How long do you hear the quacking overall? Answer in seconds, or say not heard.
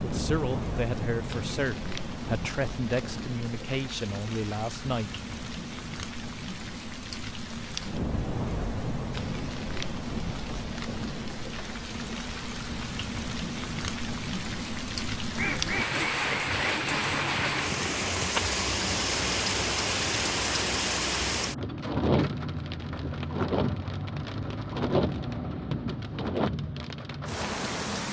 3 s.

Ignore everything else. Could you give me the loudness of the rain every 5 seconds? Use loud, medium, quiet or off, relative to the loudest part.
medium, medium, medium, loud, loud, loud.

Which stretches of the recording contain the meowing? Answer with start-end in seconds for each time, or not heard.
not heard.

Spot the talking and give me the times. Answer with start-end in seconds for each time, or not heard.
0.0-5.2.